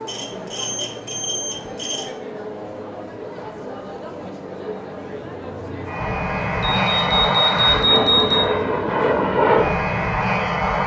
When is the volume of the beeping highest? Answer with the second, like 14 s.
8 s.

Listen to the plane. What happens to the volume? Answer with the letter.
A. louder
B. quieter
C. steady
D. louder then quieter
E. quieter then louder
A.